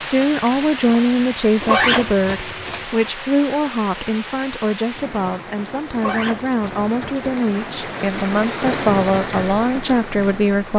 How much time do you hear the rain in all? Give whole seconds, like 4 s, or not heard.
11 s.